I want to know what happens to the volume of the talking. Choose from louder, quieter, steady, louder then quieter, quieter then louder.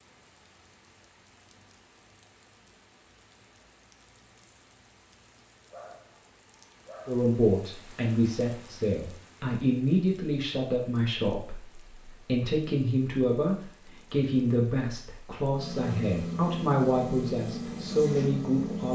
steady.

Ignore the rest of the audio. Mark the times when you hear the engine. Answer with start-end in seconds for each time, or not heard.
15.5-18.9.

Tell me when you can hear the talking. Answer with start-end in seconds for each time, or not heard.
7.0-18.9.